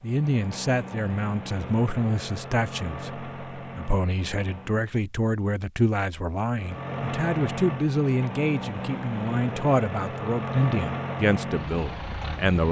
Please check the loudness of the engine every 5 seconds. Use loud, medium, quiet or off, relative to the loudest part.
medium, loud, loud.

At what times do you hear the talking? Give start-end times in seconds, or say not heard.
0.0-12.6.